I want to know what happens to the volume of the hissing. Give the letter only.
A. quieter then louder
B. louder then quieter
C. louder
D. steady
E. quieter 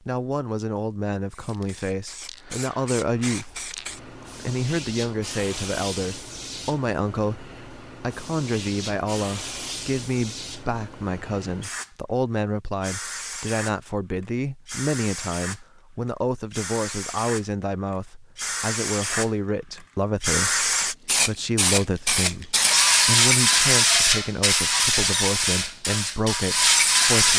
C.